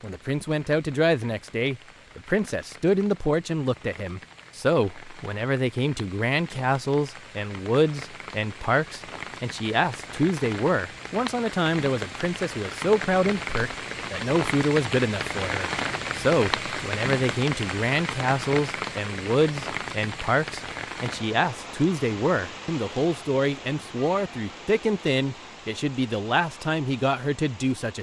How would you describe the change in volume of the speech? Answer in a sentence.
The volume of the speech stays about the same.